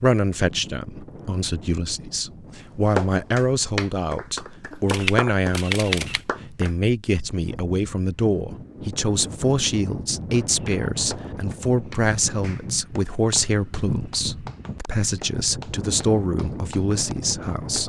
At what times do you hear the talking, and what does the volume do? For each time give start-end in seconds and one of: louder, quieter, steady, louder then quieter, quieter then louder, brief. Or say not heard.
0.0-17.8 steady.